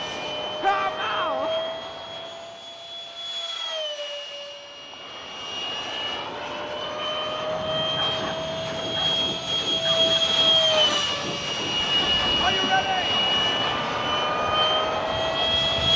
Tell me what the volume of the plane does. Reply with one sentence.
The loudness of the plane goes up.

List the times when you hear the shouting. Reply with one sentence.
You can hear the shouting from 0.6 to 1.5 s and from 12.4 to 13.2 s.